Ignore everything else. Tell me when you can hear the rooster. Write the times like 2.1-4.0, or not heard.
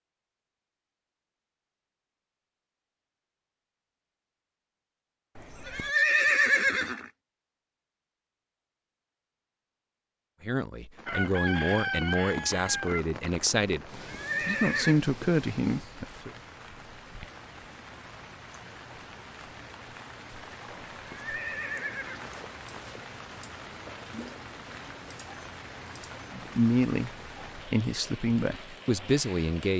11.1-13.1.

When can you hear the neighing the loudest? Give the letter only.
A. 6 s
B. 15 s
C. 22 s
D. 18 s
A.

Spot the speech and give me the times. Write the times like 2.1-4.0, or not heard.
10.4-16.3, 26.3-29.7.